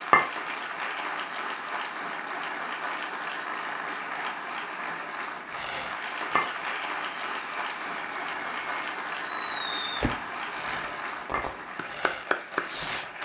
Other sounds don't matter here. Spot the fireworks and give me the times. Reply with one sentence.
The fireworks can be heard from 5.5 to 13.2 s.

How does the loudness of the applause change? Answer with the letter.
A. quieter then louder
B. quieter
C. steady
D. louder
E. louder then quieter
C.